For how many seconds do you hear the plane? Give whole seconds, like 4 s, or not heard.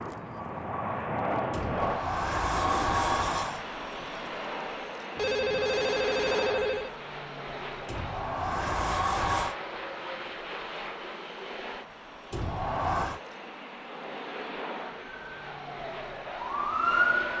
17 s.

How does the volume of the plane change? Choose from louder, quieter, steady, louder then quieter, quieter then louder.
quieter.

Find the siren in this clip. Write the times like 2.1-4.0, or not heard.
15.2-17.3.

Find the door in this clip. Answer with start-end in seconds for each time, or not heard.
1.5-3.6, 7.8-9.6, 12.3-13.2.